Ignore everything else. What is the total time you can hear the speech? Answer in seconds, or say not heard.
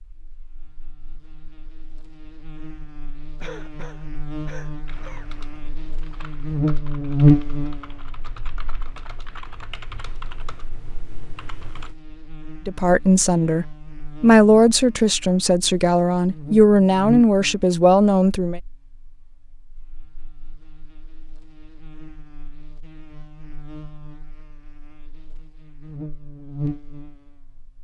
6 s.